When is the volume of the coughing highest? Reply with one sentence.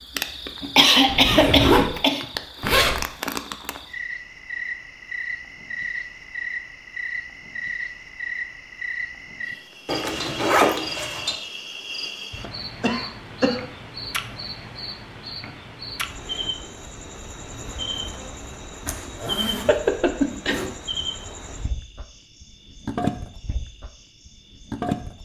The loudest moment of the coughing is at 1 second.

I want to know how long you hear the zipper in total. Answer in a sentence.
You can hear the zipper for 5 seconds altogether.